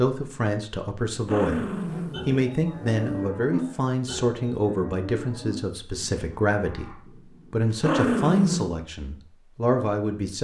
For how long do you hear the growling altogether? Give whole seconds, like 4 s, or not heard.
3 s.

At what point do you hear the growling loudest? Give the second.
8 s.